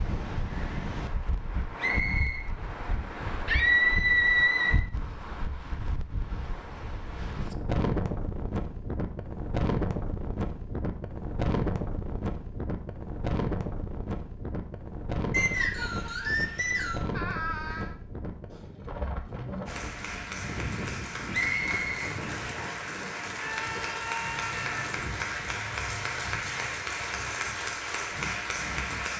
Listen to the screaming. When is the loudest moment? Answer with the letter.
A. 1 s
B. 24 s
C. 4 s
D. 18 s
C.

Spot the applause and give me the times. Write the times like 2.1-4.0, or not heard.
19.6-29.1.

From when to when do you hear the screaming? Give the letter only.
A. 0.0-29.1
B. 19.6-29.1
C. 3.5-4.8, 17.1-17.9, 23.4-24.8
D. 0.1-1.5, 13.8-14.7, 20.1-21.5
C.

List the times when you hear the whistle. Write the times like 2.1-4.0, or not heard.
1.8-2.5, 15.3-17.1, 21.3-22.8.